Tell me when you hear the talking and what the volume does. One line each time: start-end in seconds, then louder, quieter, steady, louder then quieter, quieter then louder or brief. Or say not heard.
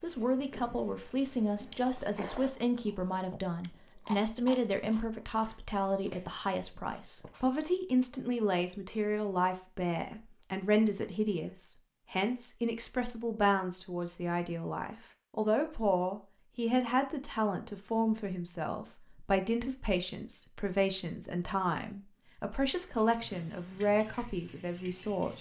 0.0-25.3 steady.